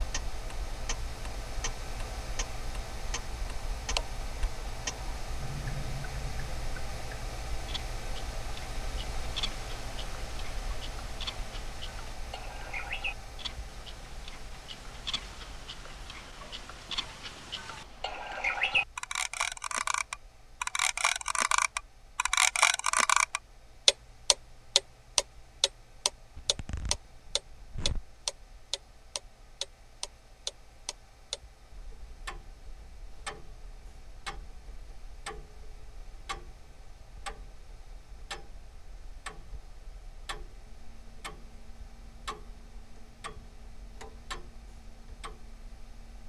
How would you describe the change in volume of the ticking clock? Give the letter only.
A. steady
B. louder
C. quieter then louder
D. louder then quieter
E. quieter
D.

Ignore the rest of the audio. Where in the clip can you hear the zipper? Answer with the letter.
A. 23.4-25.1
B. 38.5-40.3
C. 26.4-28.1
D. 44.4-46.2
C.